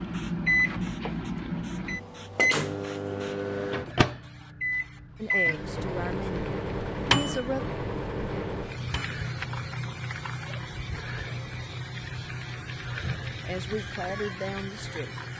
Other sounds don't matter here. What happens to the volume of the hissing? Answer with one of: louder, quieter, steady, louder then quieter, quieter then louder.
louder.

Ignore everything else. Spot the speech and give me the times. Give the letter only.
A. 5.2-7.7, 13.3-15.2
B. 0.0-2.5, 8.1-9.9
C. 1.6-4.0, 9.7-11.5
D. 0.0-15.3
A.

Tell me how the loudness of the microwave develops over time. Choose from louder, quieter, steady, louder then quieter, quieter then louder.
quieter.